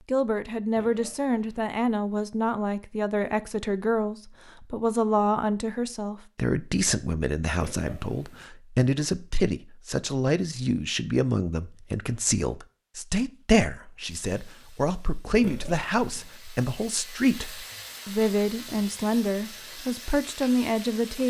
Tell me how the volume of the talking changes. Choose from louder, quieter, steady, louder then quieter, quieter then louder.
steady.